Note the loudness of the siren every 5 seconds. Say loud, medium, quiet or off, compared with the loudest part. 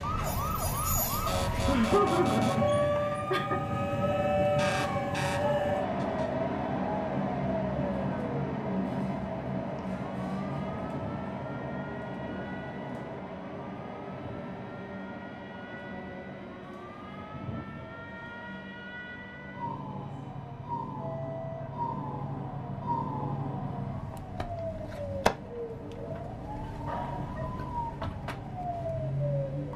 loud, loud, quiet, medium, loud, loud.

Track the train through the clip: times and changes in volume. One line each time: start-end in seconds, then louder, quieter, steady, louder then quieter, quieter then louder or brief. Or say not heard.
0.0-29.7 quieter.